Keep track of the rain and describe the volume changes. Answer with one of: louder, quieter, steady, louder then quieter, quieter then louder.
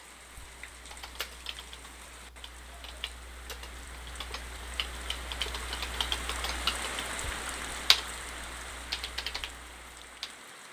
louder then quieter.